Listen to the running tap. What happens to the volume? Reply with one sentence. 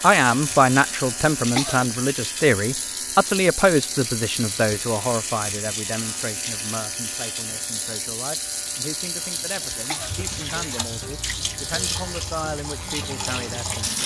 The volume of the running tap stays about the same.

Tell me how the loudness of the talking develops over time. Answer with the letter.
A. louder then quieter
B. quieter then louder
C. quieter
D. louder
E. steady
C.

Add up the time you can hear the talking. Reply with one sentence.
You can hear the talking for 14 seconds altogether.